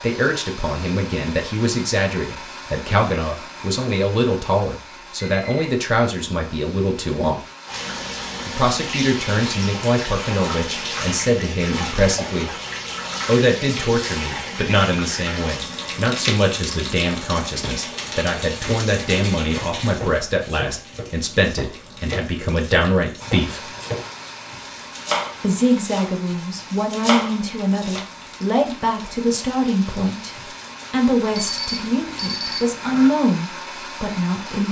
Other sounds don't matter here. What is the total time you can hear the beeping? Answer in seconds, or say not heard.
2 s.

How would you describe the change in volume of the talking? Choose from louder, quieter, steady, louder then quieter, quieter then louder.
steady.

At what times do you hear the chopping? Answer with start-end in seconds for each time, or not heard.
19.8-24.1, 24.8-28.1.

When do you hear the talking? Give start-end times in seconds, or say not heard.
0.0-7.4, 8.4-12.5, 13.2-23.7, 25.4-34.6.